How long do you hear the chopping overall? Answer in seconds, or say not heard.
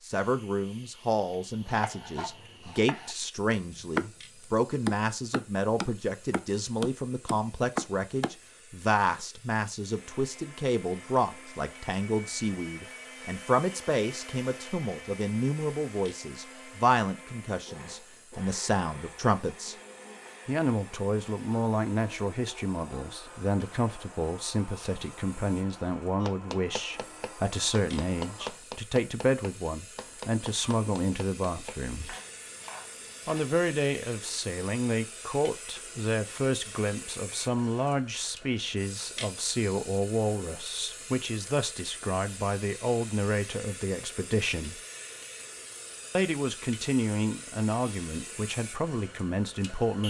14 s.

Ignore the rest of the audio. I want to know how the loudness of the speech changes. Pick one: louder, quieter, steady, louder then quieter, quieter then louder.
steady.